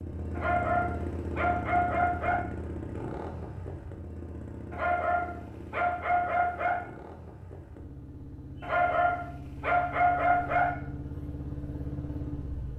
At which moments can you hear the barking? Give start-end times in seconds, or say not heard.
0.3-2.5, 4.7-6.8, 8.6-10.8.